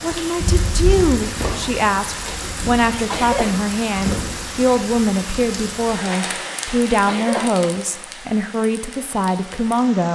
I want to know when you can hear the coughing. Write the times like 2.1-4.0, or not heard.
2.2-3.5, 6.2-7.5.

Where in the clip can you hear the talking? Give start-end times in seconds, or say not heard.
0.0-10.1.